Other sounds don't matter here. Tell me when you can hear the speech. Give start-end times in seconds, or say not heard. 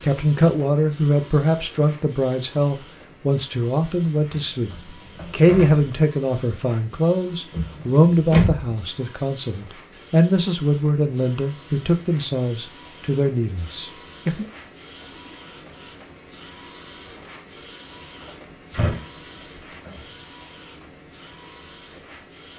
0.0-14.4.